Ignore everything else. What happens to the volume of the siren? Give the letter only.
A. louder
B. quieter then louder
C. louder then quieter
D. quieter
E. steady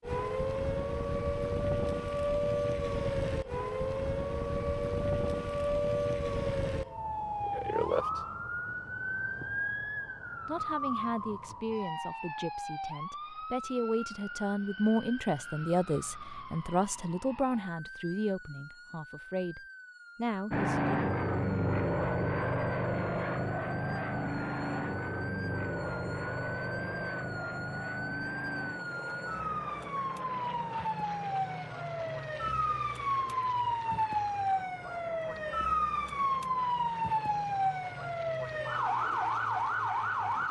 B.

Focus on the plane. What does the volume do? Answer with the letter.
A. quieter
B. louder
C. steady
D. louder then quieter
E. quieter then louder
A.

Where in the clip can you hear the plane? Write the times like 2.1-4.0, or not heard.
20.5-40.4.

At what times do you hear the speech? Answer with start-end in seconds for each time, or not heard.
10.4-21.0.